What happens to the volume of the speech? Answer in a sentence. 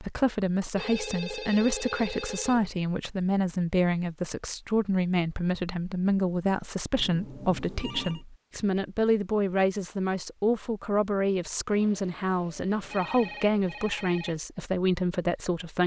The loudness of the speech stays about the same.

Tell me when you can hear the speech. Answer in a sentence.
You can hear the speech from 0.0 to 15.8 s.